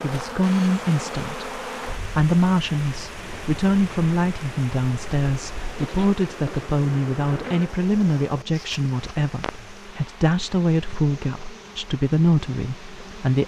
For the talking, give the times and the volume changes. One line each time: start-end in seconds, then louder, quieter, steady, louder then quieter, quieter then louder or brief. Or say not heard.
0.0-13.4 steady.